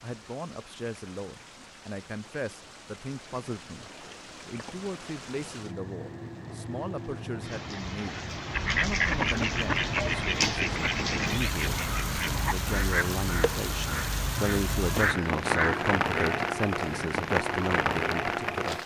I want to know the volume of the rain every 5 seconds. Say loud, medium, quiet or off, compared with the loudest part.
quiet, medium, loud, loud.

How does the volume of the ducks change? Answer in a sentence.
The volume of the ducks goes down, then up.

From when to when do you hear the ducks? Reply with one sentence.
You can hear the ducks from 8.5 to 16.4 s.